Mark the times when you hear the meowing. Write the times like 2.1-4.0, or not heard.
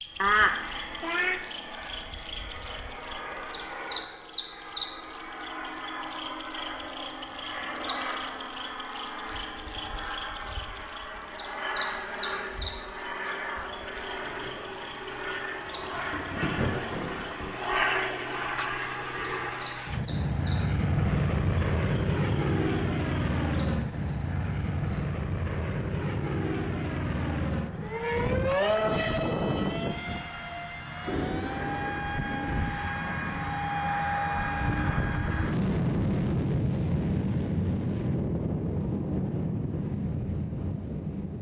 0.2-1.4.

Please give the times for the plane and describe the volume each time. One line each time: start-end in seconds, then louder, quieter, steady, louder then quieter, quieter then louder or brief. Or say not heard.
0.1-41.3 louder.